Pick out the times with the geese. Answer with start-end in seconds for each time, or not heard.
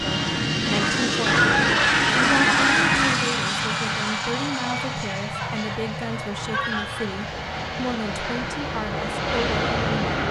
1.2-3.2, 5.3-7.0.